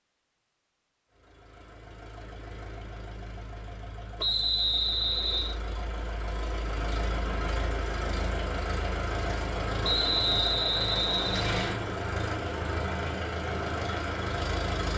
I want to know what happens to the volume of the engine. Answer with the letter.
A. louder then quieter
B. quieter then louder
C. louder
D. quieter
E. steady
C.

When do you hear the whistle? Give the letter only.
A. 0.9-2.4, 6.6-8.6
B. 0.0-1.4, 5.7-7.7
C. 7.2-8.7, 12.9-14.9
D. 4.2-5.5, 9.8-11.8
D.